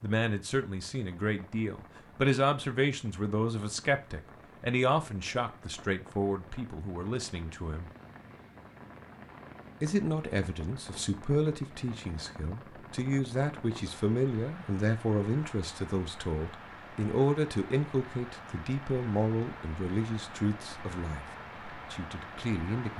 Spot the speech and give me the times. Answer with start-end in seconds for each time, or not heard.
0.0-7.9, 9.8-21.2, 21.9-22.9.